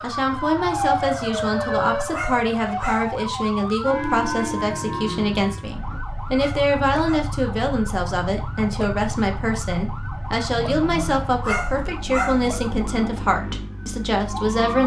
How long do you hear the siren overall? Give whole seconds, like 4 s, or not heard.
15 s.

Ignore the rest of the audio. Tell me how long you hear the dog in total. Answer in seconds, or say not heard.
3 s.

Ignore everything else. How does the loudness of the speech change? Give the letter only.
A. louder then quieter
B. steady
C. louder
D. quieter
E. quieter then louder
B.